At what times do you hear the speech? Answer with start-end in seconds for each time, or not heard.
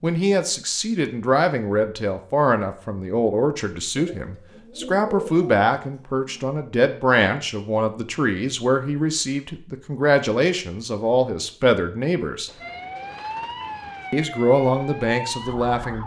0.0-12.5, 14.1-16.0.